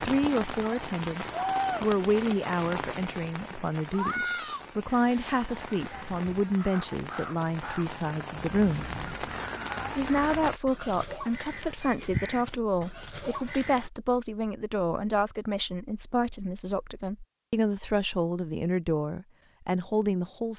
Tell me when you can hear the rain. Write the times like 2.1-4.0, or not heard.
0.0-10.6.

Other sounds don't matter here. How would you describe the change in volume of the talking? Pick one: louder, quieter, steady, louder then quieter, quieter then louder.
steady.